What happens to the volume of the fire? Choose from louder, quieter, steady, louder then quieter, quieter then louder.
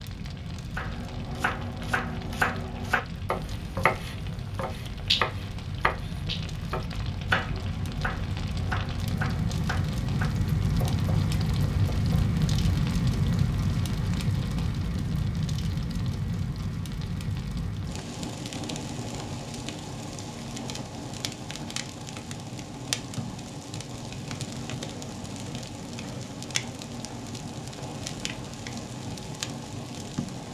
louder then quieter.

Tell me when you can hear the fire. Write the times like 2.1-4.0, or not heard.
0.0-30.4.